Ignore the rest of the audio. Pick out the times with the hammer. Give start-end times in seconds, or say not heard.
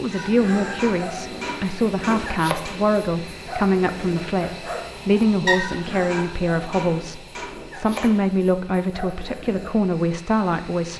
0.8-2.8, 6.1-8.1.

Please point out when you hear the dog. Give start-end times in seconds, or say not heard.
0.1-9.8.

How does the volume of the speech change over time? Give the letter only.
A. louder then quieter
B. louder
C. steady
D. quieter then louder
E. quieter
C.